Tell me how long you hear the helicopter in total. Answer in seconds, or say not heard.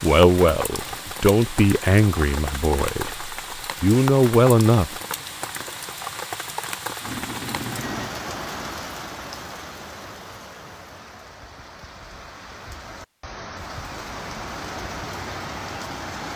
2 s.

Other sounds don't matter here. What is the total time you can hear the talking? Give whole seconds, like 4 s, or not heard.
5 s.